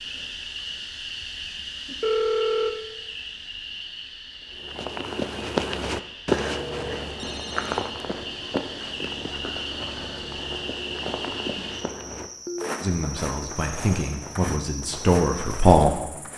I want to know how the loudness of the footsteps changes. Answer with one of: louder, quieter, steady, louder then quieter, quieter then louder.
quieter.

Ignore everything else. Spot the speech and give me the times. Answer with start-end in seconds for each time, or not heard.
12.8-16.0.